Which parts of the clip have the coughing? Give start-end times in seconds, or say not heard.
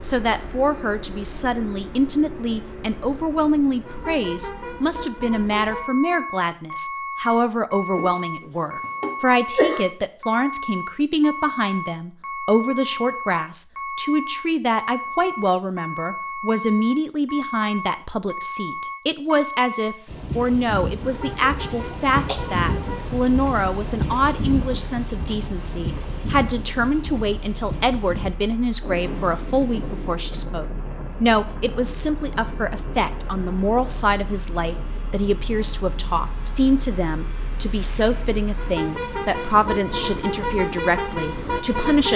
8.0-9.8, 21.7-22.4.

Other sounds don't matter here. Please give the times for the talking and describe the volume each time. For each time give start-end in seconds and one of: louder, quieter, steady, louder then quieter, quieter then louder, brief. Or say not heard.
0.0-42.1 steady.